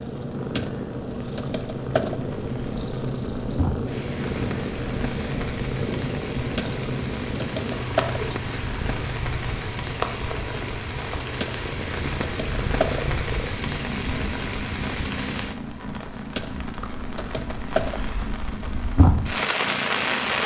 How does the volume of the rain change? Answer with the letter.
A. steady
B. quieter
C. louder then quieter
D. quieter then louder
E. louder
E.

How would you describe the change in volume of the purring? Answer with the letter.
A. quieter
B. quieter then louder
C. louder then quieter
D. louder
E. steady
A.